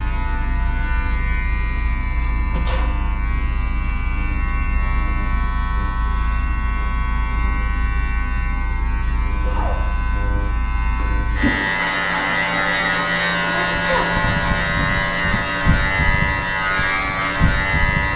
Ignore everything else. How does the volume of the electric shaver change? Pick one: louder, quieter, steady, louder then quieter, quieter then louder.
louder.